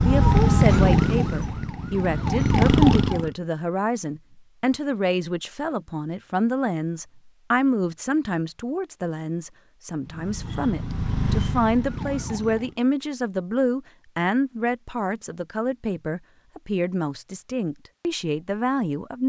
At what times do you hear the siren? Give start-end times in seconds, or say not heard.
0.0-3.3, 10.0-12.8.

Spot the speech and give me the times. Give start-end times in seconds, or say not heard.
0.0-19.2.